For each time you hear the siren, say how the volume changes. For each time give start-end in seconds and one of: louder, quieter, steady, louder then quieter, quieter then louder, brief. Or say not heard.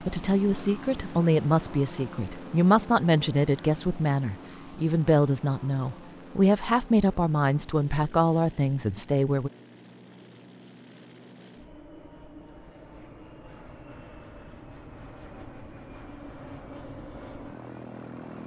not heard.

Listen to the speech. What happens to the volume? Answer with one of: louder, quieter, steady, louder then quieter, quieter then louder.
steady.